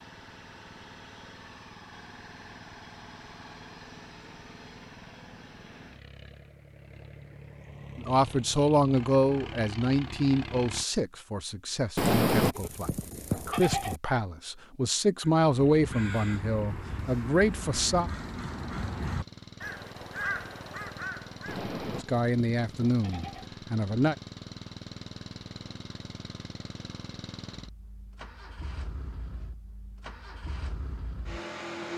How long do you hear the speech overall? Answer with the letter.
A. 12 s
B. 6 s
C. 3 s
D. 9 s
A.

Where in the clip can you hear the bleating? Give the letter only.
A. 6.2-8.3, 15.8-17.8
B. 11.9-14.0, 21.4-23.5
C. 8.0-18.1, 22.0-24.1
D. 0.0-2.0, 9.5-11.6
B.